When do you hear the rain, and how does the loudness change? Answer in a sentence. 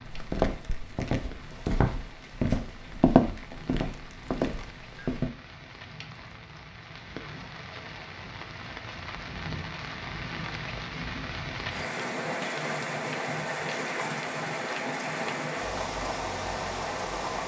The rain can be heard from 0.0 to 17.4 s, getting louder.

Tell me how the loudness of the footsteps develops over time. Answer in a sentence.
The volume of the footsteps goes up, then down.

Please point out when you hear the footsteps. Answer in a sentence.
The footsteps can be heard from 0.1 to 5.3 s.